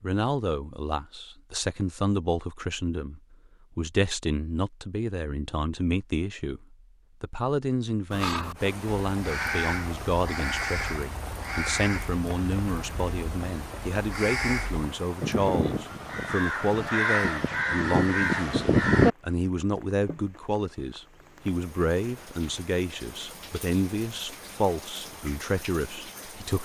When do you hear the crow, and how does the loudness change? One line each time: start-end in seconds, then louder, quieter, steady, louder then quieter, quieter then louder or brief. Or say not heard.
8.1-19.1 louder.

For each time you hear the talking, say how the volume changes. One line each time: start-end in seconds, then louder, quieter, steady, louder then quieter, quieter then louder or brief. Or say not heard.
0.0-26.6 steady.